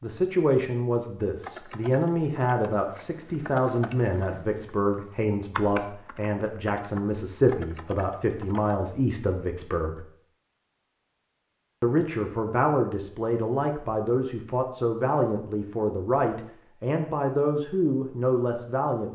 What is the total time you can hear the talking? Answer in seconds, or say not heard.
17 s.